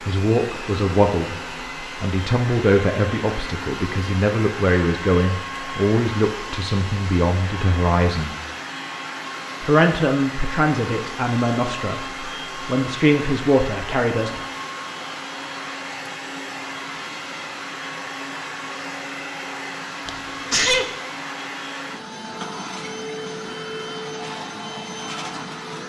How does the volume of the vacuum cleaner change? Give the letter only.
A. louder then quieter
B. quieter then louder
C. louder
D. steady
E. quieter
D.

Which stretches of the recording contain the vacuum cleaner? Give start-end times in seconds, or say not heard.
0.0-25.8.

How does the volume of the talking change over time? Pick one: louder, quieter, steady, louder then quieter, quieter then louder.
steady.